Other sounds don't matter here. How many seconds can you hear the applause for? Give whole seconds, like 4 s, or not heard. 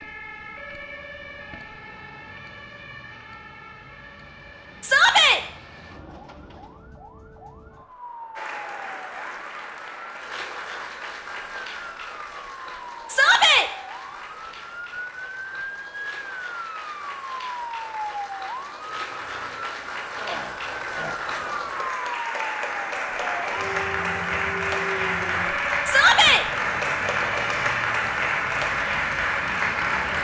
22 s.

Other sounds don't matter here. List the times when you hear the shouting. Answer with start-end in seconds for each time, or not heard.
4.8-5.4, 13.1-13.7, 25.9-26.4.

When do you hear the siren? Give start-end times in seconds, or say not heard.
0.0-30.1.